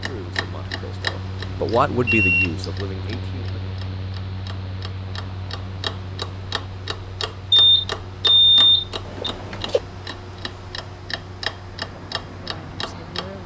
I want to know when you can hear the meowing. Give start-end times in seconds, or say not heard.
9.2-9.8.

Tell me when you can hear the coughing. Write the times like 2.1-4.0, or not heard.
not heard.